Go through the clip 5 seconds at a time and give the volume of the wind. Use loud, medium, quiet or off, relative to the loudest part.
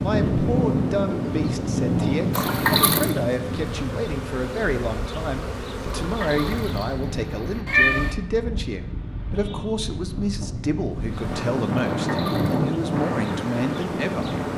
loud, medium, loud.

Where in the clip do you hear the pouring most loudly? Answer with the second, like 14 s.
3 s.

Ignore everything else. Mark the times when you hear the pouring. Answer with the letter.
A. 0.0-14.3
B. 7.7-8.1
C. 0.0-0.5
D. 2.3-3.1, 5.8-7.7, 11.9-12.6
D.